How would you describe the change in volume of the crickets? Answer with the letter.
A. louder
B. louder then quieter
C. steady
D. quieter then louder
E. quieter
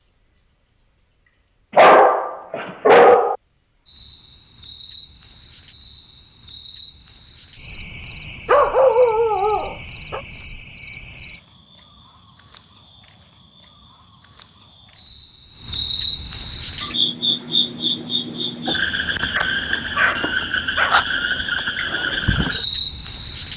A.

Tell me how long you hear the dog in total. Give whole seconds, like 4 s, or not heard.
5 s.